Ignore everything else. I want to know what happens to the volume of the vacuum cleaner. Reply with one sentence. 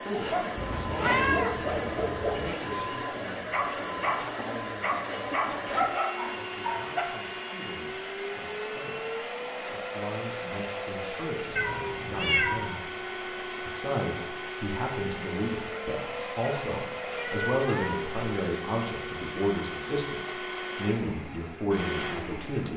The volume of the vacuum cleaner stays about the same.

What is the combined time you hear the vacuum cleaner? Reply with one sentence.
You can hear the vacuum cleaner for 23 seconds altogether.